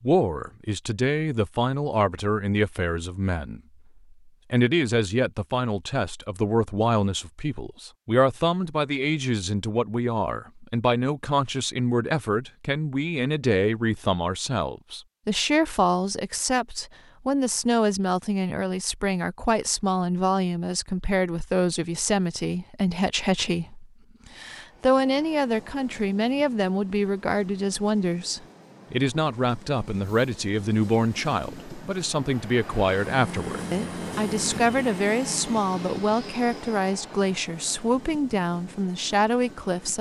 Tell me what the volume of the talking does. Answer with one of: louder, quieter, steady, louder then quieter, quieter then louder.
steady.